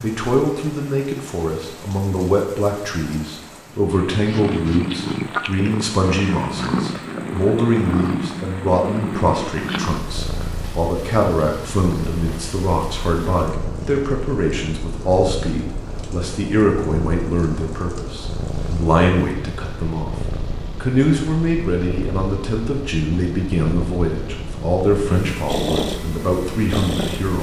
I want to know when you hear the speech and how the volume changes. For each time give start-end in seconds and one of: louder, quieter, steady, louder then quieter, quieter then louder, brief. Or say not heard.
0.0-27.3 steady.